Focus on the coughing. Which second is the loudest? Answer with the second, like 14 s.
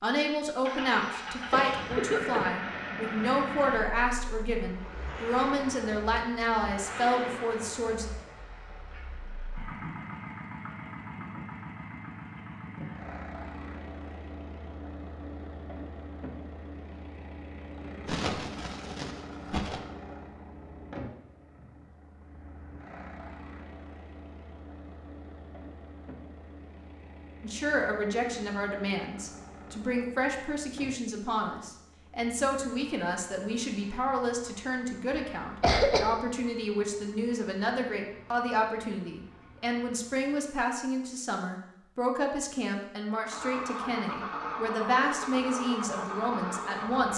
36 s.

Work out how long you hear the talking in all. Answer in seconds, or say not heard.
28 s.